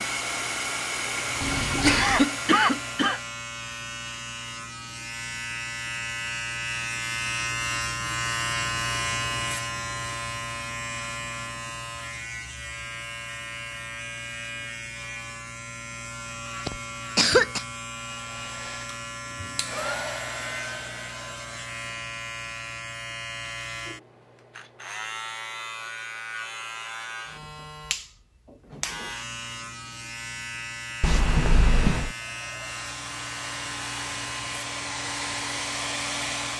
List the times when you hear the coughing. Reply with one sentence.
You can hear the coughing from 1.8 to 3.2 s, from 16.6 to 17.6 s and from 31.0 to 32.1 s.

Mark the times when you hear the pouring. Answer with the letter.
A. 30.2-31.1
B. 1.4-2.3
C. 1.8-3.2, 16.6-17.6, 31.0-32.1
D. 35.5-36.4
B.